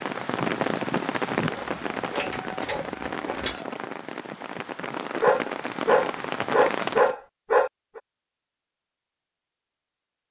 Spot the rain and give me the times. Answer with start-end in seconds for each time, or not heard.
0.0-7.2.